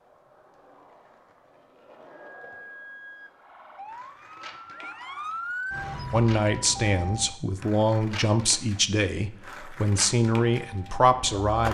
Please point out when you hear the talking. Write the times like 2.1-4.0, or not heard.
6.1-11.6.